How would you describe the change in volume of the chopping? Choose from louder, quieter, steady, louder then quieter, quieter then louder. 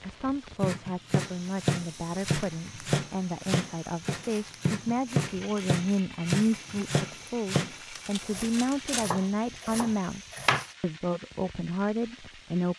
quieter.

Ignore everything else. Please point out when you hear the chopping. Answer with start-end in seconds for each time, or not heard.
0.6-10.7.